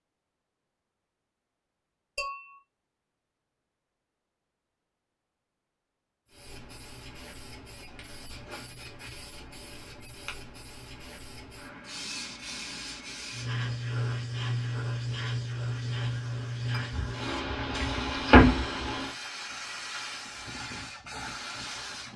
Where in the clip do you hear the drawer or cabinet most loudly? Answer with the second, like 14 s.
18 s.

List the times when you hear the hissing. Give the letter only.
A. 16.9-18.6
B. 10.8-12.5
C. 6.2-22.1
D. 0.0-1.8
C.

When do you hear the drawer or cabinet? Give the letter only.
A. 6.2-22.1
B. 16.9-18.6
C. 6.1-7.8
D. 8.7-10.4
B.